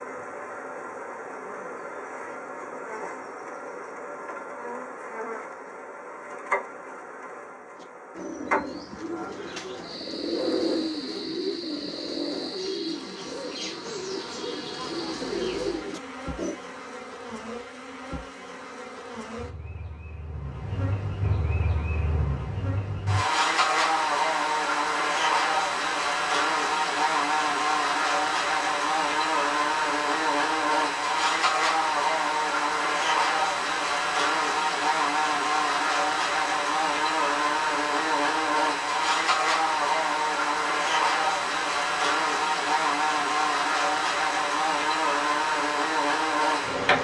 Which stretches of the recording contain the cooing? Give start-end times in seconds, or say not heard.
7.8-16.6.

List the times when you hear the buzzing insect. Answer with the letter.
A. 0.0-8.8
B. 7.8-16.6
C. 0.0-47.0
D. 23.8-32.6
C.